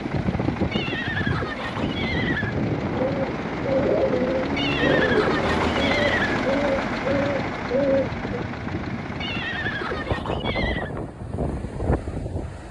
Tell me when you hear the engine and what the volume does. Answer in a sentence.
The engine can be heard from 0.0 to 10.2 s, getting louder then quieter.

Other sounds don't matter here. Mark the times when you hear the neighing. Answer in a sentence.
You can hear the neighing from 0.7 to 2.5 s, from 4.5 to 6.4 s and from 9.2 to 10.9 s.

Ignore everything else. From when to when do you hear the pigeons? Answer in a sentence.
The pigeons can be heard from 2.9 to 8.4 s.